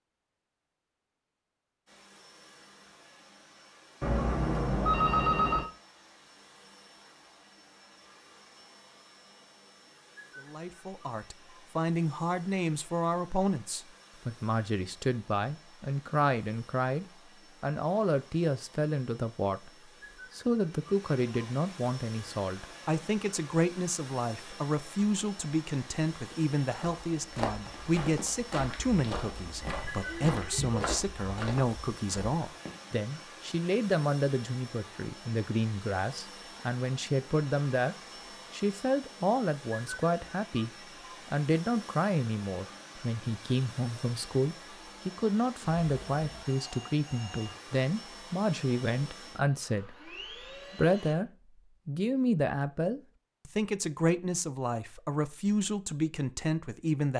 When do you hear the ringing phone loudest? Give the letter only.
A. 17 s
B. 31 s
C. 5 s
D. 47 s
C.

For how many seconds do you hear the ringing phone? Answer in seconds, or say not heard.
5 s.